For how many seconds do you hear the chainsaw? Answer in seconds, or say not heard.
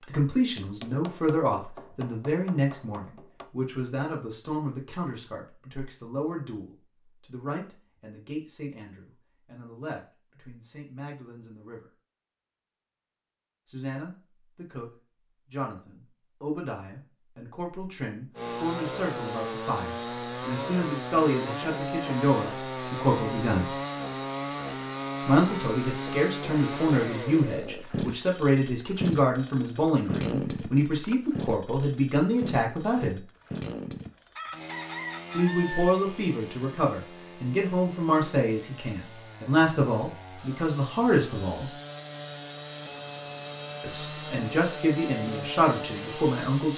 28 s.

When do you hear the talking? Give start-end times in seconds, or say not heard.
0.1-11.9, 13.7-23.7, 25.2-33.2, 35.3-41.7, 43.8-46.7.